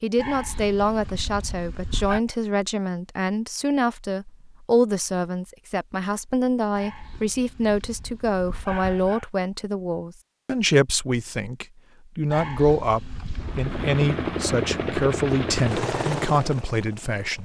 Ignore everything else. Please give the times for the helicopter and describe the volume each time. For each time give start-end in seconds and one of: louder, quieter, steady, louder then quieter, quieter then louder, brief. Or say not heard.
13.3-17.4 quieter.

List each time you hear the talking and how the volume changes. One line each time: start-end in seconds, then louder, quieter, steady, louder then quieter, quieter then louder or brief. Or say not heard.
0.0-17.4 steady.